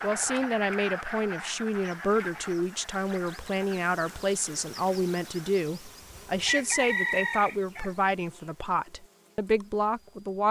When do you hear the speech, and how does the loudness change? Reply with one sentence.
You can hear the speech from 0.0 to 10.4 s, at a steady volume.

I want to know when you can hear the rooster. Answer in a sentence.
The rooster can be heard from 6.5 to 7.9 s.